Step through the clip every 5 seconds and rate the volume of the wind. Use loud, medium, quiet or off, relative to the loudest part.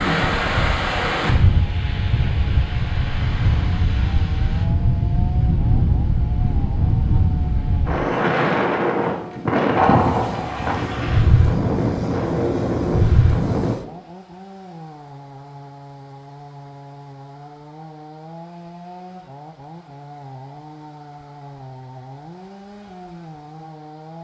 loud, loud, loud, off, off.